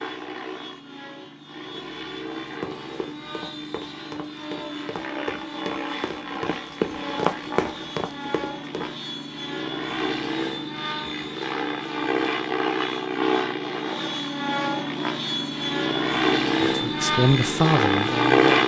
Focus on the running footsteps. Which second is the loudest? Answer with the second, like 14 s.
7 s.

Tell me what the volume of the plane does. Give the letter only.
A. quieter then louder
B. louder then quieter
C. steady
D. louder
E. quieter
D.